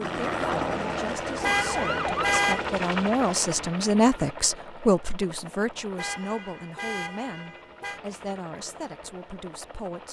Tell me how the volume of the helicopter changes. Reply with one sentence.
The volume of the helicopter goes down.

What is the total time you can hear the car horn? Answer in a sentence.
The car horn can be heard for 3 seconds in total.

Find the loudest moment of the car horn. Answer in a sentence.
The volume of the car horn peaks at 2 seconds.